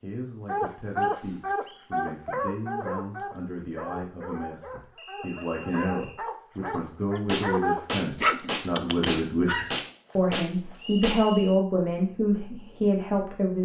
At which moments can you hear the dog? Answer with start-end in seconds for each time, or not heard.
0.5-9.8.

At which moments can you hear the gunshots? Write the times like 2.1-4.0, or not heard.
7.2-11.2.